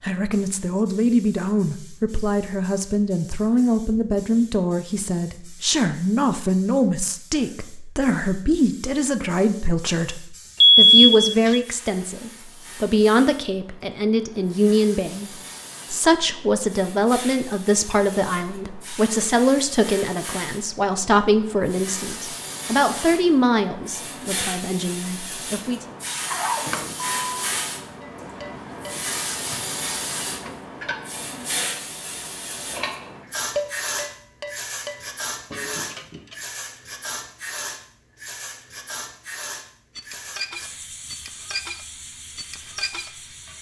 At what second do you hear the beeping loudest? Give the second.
11 s.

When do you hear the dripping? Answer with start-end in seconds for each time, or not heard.
not heard.